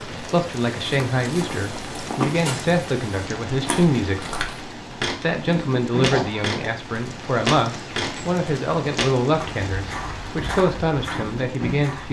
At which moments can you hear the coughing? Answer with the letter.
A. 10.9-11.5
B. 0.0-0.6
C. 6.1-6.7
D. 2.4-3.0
C.